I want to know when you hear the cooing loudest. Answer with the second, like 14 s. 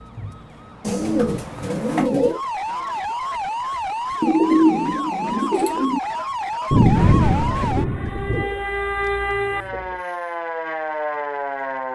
5 s.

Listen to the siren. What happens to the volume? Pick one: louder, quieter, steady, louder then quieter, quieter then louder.
louder.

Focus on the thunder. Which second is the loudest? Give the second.
7 s.